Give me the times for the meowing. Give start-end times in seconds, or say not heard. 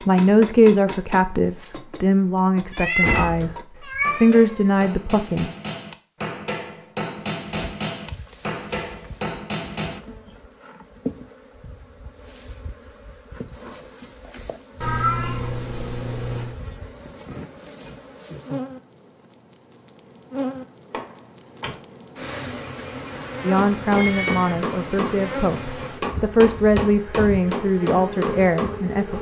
2.7-4.7, 14.8-16.6, 23.9-24.7.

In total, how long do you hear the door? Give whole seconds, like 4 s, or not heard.
2 s.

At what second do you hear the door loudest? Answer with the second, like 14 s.
3 s.